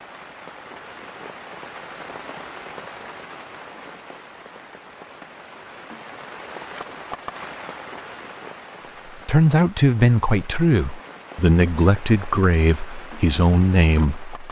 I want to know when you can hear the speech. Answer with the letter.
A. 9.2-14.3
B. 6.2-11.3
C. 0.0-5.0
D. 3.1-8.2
A.